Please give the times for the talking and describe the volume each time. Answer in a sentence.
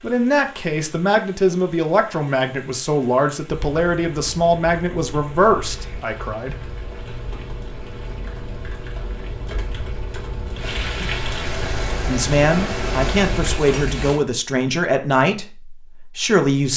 You can hear the talking from 0.0 to 6.5 s, at a steady volume; and from 12.1 to 16.7 s, getting quieter.